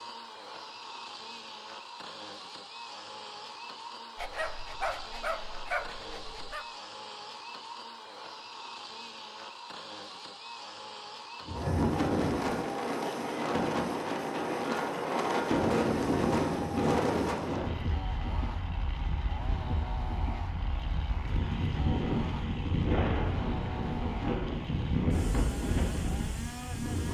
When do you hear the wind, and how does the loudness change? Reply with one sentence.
You can hear the wind from 11.4 to 27.0 s, getting quieter then louder.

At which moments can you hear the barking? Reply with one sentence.
The barking can be heard from 4.2 to 6.7 s.